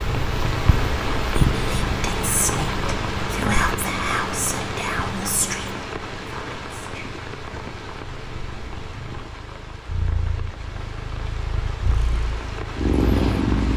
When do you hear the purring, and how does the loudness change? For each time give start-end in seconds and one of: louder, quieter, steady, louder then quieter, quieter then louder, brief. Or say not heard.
0.0-13.7 quieter then louder.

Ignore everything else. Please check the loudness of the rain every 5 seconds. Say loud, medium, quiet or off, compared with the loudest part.
loud, medium, medium.